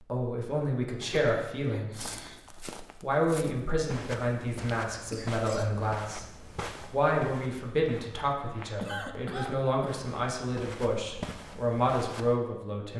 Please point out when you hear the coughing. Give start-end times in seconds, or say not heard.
1.0-2.4, 5.1-5.9, 8.8-10.0.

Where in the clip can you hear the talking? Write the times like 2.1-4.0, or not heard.
0.0-2.2, 3.0-6.2, 6.9-12.9.